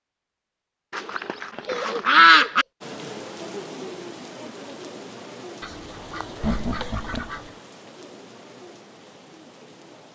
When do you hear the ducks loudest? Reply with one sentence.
The volume of the ducks peaks at 2 seconds.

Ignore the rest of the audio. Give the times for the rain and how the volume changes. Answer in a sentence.
You can hear the rain from 2.8 to 10.1 s, getting quieter.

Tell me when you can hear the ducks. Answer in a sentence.
You can hear the ducks from 0.9 to 2.6 s and from 5.6 to 7.5 s.